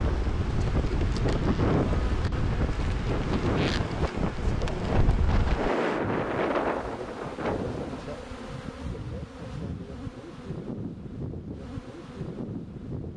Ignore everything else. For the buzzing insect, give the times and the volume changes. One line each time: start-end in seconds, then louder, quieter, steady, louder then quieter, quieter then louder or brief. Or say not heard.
0.0-13.1 steady.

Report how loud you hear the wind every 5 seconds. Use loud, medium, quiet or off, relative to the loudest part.
loud, loud, off.